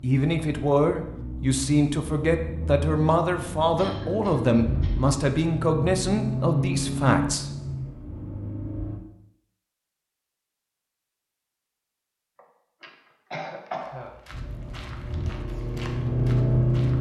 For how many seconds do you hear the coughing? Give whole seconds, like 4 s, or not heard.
3 s.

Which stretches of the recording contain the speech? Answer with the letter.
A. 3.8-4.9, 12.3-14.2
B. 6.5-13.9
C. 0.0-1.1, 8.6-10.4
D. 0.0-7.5
D.